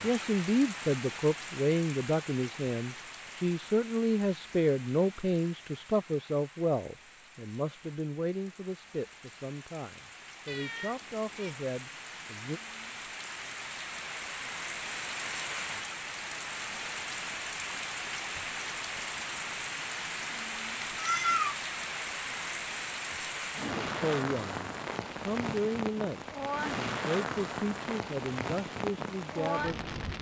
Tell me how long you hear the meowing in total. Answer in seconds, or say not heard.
2 s.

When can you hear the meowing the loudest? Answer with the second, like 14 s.
21 s.